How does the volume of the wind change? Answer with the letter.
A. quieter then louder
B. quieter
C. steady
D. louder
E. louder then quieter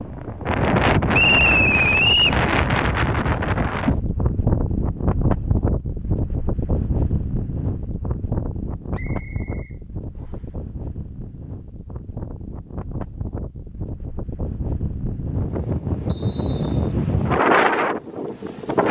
A.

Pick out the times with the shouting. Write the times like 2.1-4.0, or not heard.
not heard.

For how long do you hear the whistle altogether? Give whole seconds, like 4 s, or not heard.
4 s.